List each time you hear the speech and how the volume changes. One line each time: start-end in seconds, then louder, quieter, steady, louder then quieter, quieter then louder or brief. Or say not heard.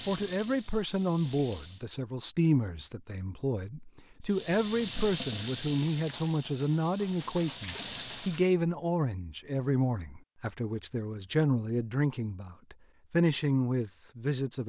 0.1-14.6 steady.